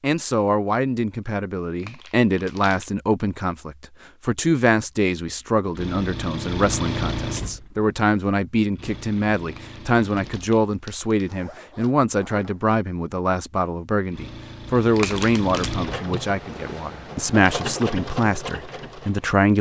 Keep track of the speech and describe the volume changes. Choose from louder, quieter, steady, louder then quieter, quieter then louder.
steady.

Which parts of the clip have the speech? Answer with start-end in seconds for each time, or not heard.
0.0-19.5.